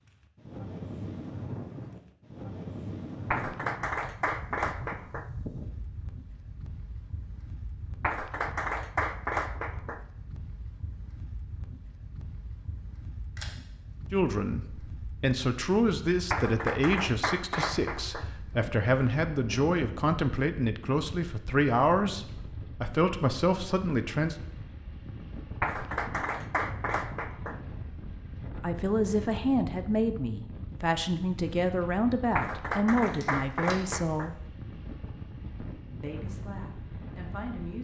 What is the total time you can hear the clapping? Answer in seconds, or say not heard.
10 s.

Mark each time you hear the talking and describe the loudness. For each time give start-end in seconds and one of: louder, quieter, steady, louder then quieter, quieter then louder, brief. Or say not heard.
14.1-24.4 steady
28.6-34.4 steady
36.0-37.7 brief.